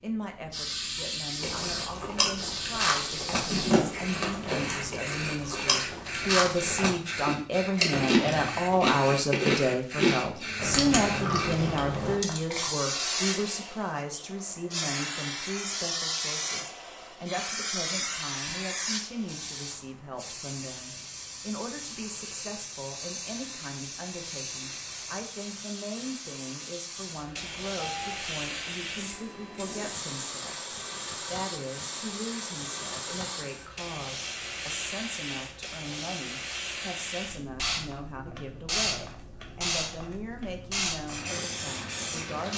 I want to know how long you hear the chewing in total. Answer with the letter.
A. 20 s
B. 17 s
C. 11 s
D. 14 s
C.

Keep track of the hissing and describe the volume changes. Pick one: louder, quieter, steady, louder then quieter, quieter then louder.
steady.